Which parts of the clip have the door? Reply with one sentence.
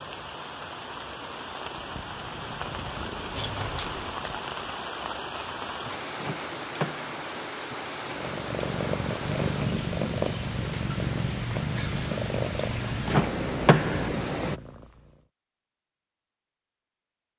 The door can be heard from 3.4 to 4.2 s, from 6.2 to 7.2 s and from 13.1 to 14.1 s.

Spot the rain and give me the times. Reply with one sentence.
The rain can be heard from 0.0 to 14.6 s.